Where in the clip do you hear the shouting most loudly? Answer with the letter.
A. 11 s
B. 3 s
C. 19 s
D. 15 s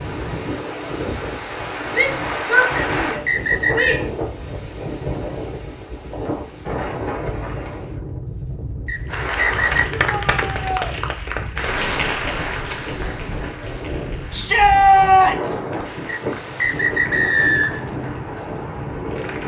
D.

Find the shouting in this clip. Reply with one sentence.
You can hear the shouting from 1.9 to 4.2 s, from 9.9 to 10.9 s and from 14.3 to 15.6 s.